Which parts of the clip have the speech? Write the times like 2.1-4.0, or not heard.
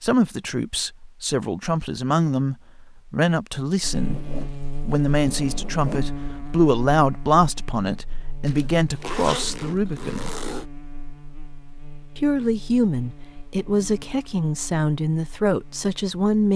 0.0-10.3, 12.2-16.5.